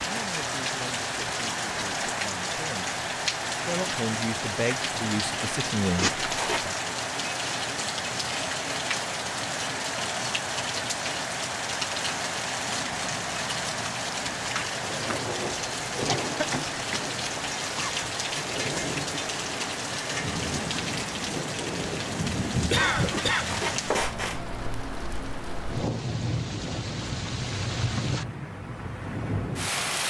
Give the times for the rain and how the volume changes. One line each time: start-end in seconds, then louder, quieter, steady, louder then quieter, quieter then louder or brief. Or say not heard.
0.0-30.0 steady.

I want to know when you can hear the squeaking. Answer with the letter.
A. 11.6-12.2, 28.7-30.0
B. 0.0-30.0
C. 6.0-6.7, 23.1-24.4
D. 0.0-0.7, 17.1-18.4
C.